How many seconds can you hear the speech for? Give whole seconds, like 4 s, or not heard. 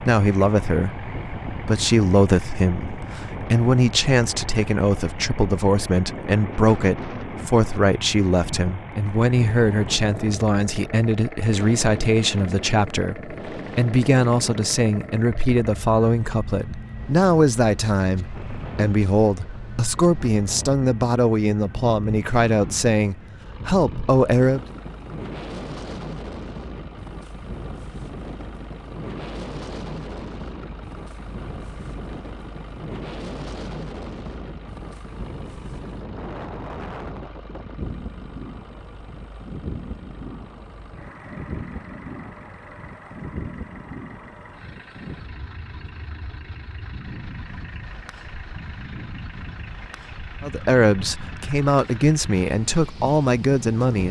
28 s.